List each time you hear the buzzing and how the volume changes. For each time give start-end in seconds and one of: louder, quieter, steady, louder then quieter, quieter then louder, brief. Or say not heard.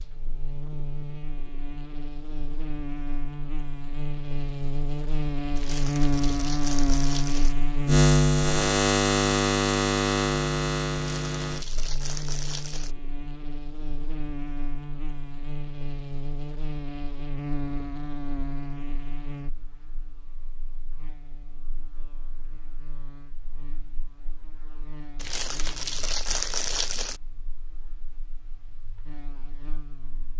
0.0-30.3 louder then quieter.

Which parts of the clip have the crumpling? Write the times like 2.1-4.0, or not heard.
5.5-7.5, 10.9-12.9, 25.1-27.2.